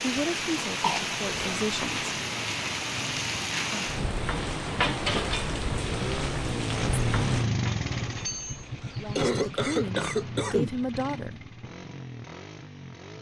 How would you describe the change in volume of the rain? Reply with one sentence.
The volume of the rain goes down.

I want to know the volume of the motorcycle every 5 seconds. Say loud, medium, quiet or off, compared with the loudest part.
medium, loud, medium.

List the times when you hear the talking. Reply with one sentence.
You can hear the talking from 0.0 to 2.1 s and from 9.0 to 11.4 s.